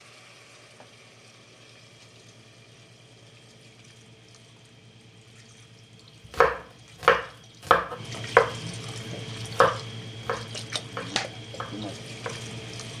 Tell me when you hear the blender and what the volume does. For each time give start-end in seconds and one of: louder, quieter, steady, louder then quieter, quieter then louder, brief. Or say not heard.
not heard.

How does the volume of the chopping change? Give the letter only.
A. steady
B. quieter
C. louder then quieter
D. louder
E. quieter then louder
B.